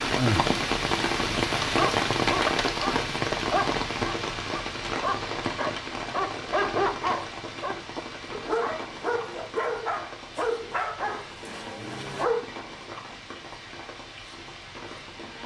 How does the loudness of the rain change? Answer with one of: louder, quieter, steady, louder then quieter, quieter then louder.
quieter.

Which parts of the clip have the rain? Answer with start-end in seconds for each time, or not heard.
0.0-15.4.